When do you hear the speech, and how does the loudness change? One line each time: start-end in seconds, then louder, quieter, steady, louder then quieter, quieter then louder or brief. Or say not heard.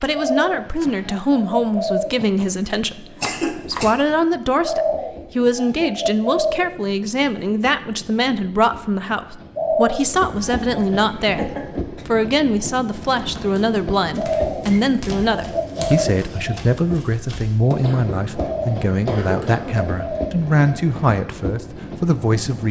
0.0-22.6 steady.